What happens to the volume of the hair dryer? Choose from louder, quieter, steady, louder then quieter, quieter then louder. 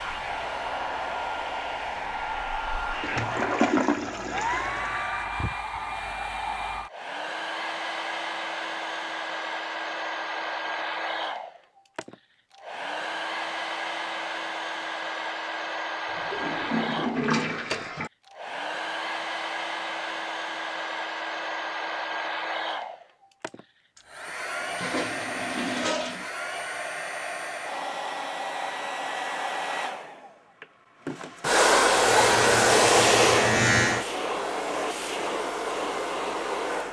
louder.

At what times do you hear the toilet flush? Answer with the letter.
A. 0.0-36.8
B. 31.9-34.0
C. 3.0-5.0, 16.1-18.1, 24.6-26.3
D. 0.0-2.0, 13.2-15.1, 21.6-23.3
C.